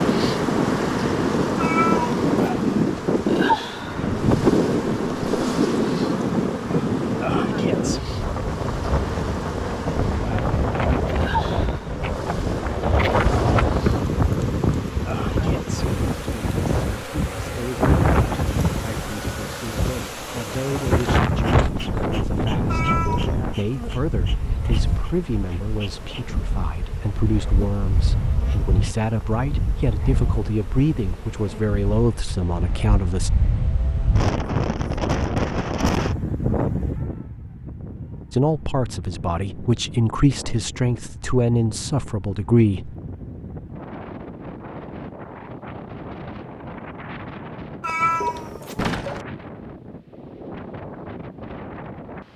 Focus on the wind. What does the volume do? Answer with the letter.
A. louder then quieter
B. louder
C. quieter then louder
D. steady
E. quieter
E.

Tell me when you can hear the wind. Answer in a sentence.
You can hear the wind from 0.0 to 52.3 s.